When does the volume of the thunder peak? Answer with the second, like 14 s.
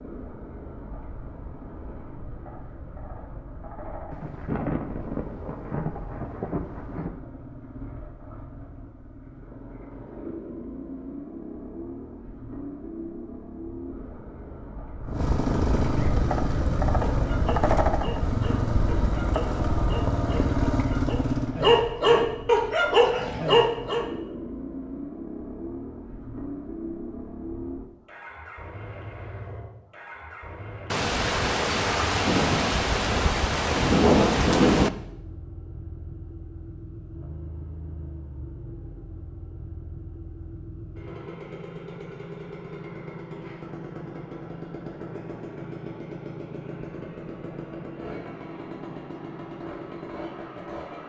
34 s.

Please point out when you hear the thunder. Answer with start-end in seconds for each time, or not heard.
4.1-7.2, 30.9-34.9.